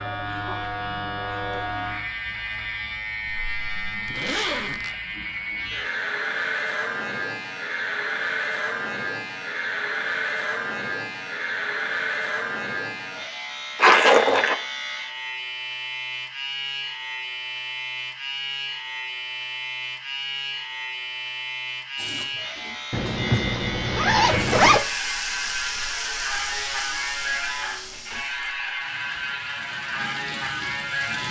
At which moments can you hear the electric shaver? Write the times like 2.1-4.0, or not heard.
0.0-31.2.